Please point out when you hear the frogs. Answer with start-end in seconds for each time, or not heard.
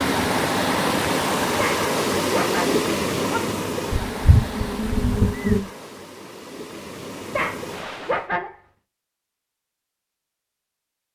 not heard.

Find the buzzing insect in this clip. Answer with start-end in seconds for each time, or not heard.
3.9-5.6.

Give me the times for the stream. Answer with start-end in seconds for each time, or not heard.
0.0-8.3.